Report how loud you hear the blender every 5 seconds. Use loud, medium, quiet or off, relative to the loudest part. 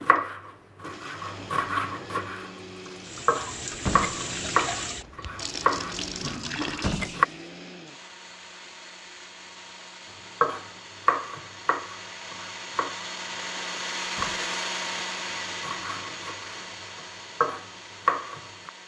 medium, medium, loud, loud.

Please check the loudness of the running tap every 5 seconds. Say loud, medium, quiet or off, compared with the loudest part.
loud, loud, off, off.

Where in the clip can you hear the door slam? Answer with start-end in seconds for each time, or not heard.
3.7-4.2, 6.7-7.2, 14.0-14.5.